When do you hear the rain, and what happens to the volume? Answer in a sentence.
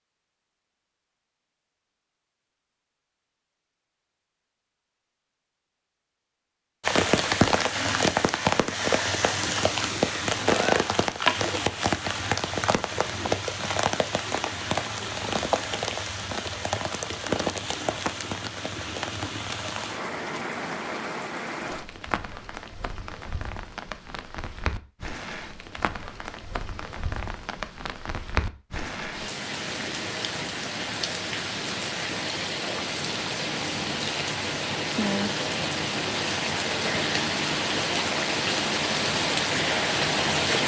The rain can be heard from 6.8 to 40.6 s, getting quieter then louder.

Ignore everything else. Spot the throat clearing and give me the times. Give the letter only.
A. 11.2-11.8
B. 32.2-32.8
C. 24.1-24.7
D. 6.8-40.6
A.